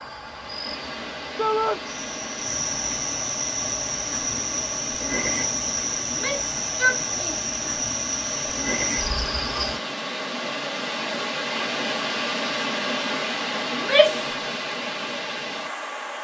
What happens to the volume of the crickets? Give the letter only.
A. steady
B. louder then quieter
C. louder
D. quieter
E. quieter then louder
C.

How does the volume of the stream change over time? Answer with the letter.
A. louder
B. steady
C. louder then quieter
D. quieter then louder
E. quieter
A.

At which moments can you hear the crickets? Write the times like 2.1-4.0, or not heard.
0.0-9.8.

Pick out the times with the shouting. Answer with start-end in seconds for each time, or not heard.
1.4-1.8, 6.0-7.4, 13.7-14.3.